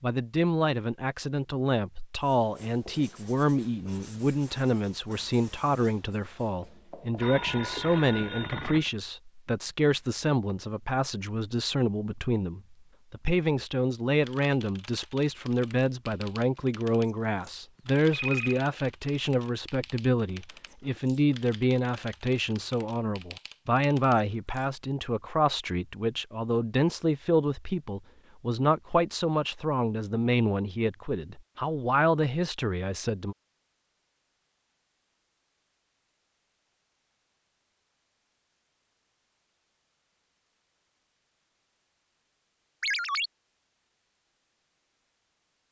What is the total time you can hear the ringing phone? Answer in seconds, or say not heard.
3 s.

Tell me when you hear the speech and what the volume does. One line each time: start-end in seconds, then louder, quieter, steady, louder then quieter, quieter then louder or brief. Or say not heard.
0.0-33.4 steady.